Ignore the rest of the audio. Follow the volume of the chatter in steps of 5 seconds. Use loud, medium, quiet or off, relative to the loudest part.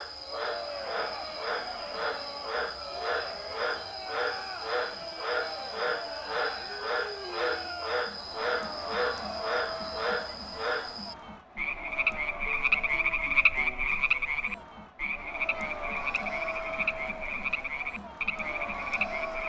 loud, loud, medium, loud.